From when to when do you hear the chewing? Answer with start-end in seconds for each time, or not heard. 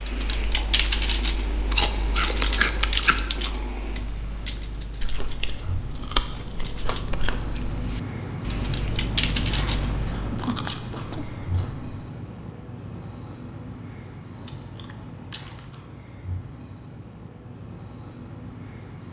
1.7-3.2, 5.0-7.8, 10.1-11.9, 14.3-15.8.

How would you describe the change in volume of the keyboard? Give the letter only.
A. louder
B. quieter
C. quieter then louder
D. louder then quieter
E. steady
C.